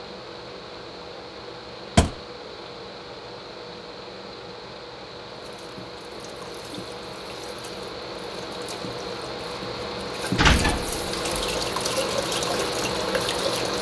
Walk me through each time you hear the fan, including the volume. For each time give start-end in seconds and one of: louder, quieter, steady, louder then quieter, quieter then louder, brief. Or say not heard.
0.0-13.7 louder.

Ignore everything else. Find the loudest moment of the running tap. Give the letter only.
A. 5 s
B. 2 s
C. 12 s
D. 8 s
C.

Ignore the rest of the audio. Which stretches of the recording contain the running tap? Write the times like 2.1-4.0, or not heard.
5.5-13.7.